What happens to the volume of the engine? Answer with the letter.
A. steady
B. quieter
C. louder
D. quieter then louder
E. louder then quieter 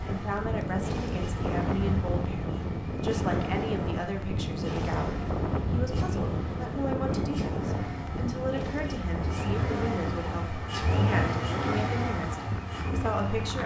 C.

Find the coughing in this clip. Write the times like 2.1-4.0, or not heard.
not heard.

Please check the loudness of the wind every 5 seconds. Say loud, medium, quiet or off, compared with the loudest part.
loud, loud, medium.